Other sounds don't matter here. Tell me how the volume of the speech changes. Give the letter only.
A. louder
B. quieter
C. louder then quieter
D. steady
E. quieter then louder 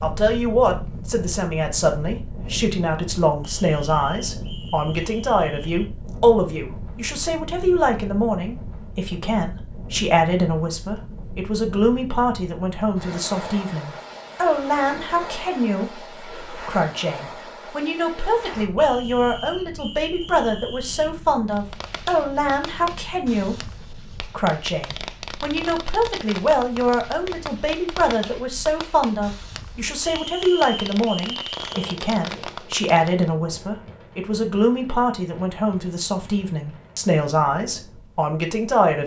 D.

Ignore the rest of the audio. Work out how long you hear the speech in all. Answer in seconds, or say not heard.
39 s.